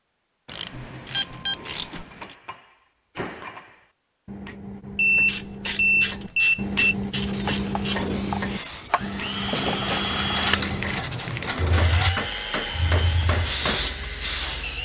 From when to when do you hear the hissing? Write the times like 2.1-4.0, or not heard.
7.2-14.8.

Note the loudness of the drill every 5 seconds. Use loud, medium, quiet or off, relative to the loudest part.
off, loud, loud.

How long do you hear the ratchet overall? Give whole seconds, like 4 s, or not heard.
7 s.